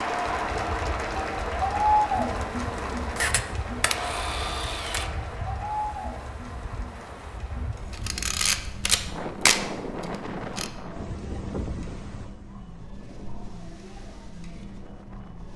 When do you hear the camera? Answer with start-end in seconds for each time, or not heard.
3.1-5.1, 7.9-10.7.